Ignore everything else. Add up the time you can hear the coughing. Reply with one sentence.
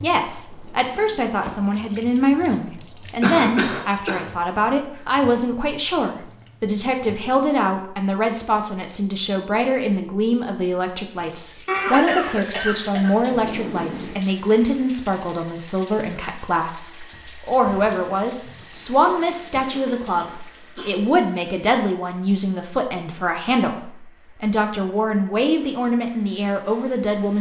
You can hear the coughing for 5 seconds altogether.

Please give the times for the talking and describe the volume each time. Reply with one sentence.
You can hear the talking from 0.0 to 27.3 s, at a steady volume.